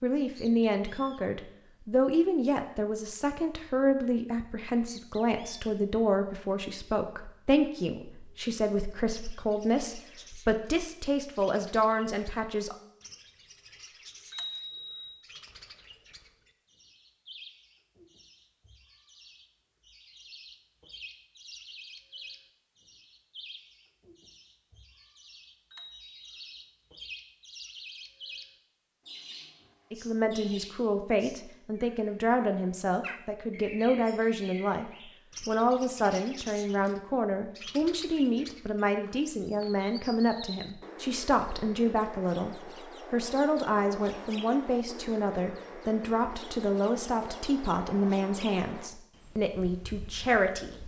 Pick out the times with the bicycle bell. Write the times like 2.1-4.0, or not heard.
14.3-15.2, 25.7-26.6.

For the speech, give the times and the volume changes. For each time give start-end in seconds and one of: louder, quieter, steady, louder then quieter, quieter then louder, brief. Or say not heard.
0.0-12.8 steady
29.9-50.8 steady.